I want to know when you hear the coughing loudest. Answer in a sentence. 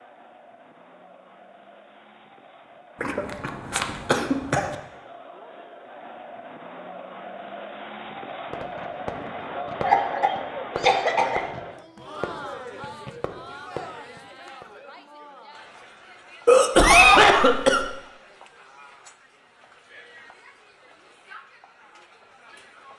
The loudest moment of the coughing is at 17 seconds.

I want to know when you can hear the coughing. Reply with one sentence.
You can hear the coughing from 3.0 to 4.8 s, from 9.8 to 11.4 s and from 16.4 to 17.9 s.